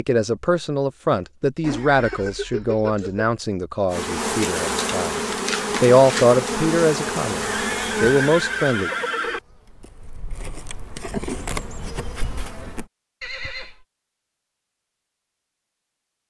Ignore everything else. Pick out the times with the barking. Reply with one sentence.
The barking can't be heard in this clip.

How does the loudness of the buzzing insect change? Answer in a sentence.
The volume of the buzzing insect goes down, then up.